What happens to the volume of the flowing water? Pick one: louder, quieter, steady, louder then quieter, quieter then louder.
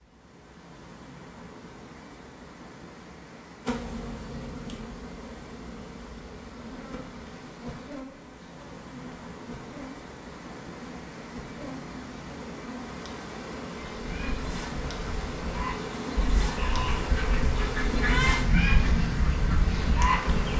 louder.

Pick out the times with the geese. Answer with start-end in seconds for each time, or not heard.
13.9-20.5.